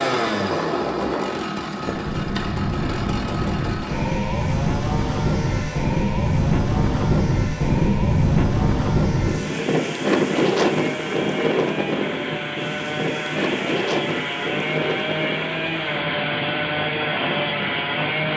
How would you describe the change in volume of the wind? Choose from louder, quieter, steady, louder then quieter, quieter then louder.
louder then quieter.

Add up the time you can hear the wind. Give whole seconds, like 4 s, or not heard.
18 s.